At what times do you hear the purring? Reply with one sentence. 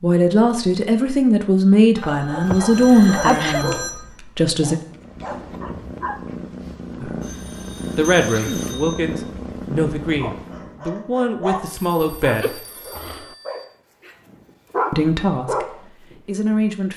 You can hear the purring from 4.8 to 10.8 s.